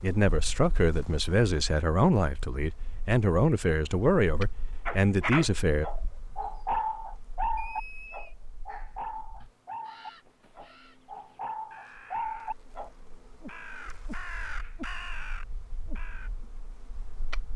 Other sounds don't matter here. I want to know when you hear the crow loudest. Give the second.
15 s.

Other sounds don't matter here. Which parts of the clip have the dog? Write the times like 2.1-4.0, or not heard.
4.8-12.9.